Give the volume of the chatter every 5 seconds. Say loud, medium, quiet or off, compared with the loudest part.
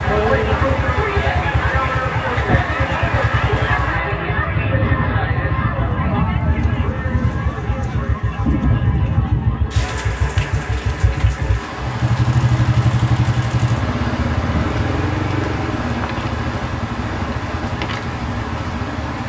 loud, medium, off, off.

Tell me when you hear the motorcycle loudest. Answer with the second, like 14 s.
13 s.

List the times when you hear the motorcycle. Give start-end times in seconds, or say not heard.
0.0-19.2.